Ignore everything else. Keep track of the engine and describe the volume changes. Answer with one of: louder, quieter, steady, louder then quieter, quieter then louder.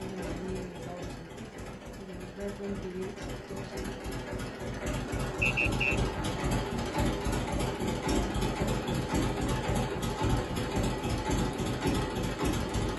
louder.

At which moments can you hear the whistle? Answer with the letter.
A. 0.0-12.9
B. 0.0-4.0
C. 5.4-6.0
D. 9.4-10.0
C.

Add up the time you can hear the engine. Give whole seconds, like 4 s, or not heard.
13 s.